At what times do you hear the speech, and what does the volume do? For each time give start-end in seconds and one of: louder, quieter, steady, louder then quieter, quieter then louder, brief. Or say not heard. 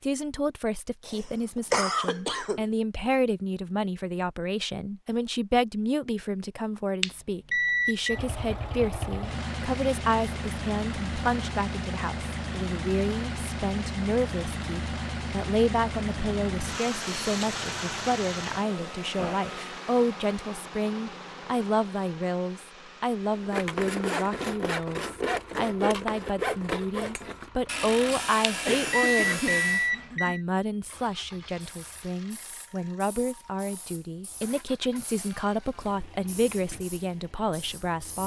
0.0-38.2 steady.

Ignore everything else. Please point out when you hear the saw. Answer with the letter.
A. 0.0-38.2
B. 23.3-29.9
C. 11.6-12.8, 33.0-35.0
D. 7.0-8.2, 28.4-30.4
B.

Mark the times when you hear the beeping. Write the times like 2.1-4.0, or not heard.
7.0-8.2, 28.4-30.4.